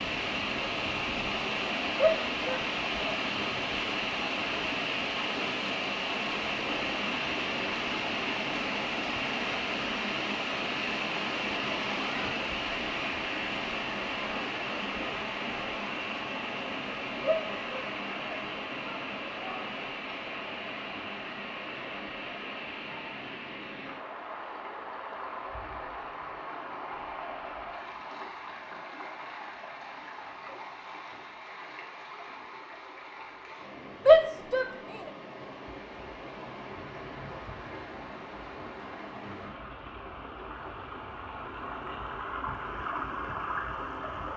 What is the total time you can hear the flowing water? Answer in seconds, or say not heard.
44 s.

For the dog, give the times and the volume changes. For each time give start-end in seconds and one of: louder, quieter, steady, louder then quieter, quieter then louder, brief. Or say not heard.
not heard.